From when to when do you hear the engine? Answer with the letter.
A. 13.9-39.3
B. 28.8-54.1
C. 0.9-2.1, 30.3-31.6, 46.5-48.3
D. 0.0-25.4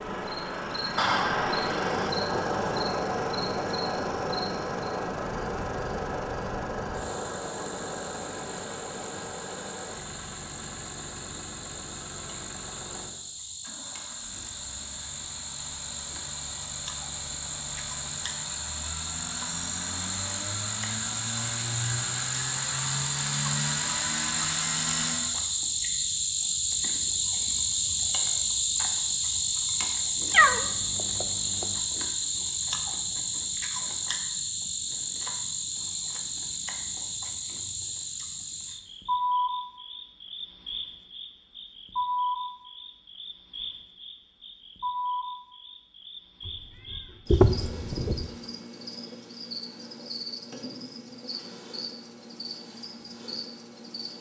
D.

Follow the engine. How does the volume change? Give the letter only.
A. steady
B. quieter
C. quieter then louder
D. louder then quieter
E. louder
C.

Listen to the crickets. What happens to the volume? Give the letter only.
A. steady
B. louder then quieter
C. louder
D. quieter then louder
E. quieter
B.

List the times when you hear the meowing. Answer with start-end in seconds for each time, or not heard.
0.9-2.1, 30.3-31.6, 46.5-48.3.